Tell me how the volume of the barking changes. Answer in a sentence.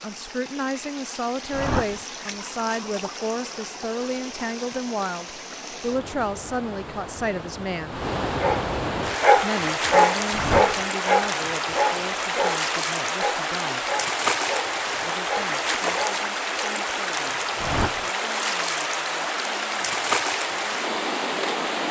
The loudness of the barking goes down.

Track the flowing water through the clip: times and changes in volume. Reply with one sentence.
The flowing water can be heard from 0.0 to 21.8 s, getting louder.